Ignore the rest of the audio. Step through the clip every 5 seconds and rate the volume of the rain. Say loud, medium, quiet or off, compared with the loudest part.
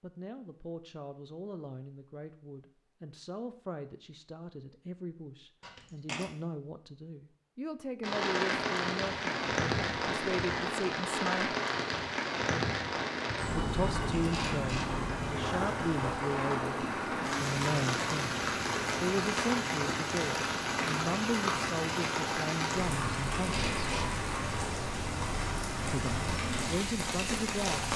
off, loud, loud, loud, loud, loud.